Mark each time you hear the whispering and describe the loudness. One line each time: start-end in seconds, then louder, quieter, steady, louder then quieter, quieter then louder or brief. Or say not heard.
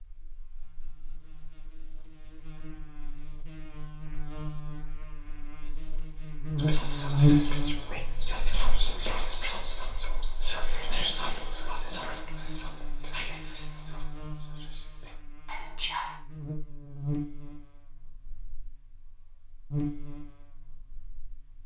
6.5-16.2 quieter.